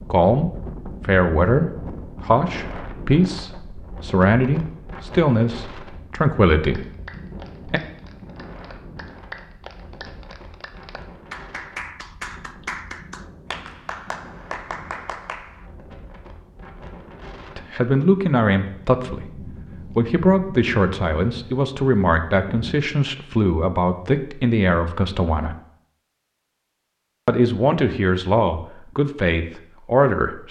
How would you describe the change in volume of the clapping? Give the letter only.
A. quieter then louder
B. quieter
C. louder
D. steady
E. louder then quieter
C.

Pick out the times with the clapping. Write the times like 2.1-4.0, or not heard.
6.7-15.7.